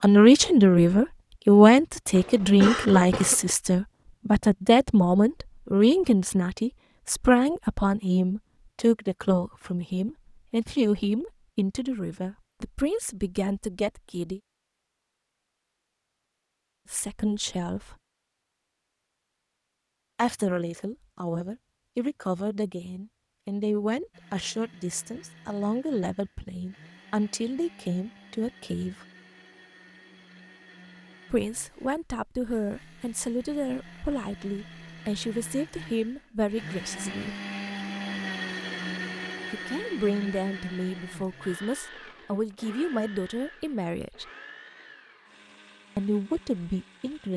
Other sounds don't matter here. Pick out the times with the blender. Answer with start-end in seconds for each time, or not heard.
24.1-47.3.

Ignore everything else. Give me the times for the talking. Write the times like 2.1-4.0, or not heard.
0.0-14.4, 16.9-17.9, 20.1-29.1, 31.3-37.4, 39.5-44.2, 46.0-47.3.